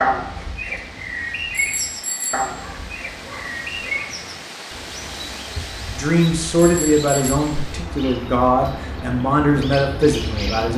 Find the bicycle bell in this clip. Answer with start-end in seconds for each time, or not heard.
1.5-2.6, 6.6-7.4.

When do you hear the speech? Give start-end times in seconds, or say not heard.
5.5-10.7.